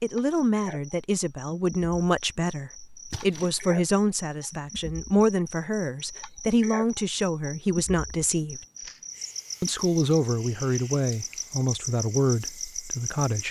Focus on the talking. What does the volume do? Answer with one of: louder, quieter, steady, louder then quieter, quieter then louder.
steady.